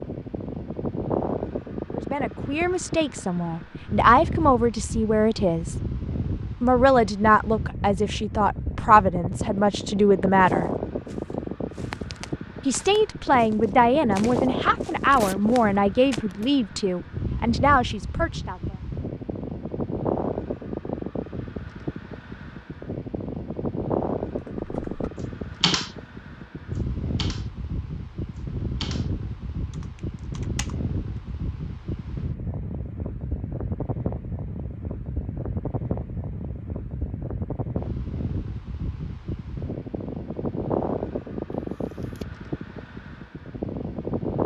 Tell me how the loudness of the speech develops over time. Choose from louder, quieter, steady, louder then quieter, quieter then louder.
steady.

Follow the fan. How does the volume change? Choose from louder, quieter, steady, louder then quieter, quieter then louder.
steady.